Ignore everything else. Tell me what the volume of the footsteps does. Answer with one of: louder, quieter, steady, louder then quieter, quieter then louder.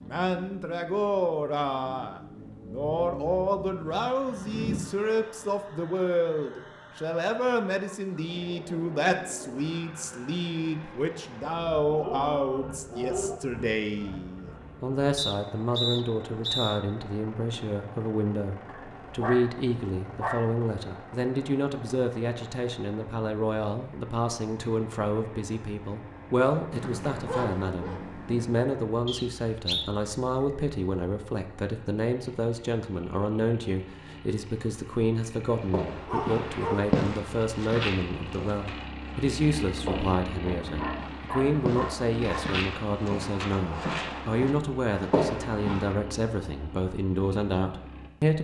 quieter then louder.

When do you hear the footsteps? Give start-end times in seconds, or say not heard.
35.6-46.0.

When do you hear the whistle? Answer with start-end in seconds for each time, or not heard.
15.2-16.8, 29.1-29.9.